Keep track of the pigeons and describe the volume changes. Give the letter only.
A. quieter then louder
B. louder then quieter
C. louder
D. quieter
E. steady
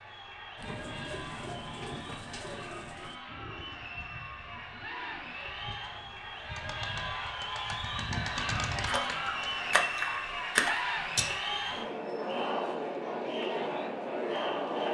A.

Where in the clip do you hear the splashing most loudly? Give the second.
11 s.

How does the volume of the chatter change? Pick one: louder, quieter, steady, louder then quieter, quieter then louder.
louder.